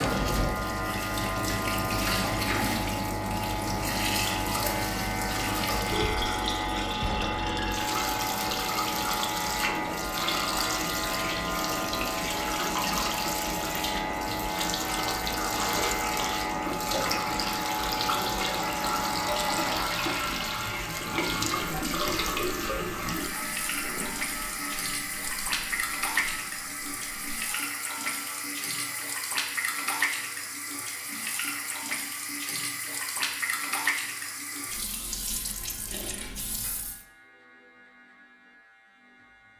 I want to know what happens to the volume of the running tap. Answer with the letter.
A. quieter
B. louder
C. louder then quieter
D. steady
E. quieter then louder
D.